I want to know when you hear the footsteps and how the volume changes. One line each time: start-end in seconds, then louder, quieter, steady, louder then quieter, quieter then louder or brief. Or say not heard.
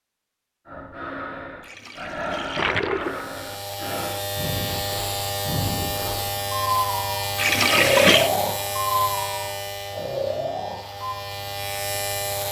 not heard.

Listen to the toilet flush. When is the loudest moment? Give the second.
8 s.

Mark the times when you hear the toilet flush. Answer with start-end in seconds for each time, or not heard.
1.6-3.2, 7.3-8.3.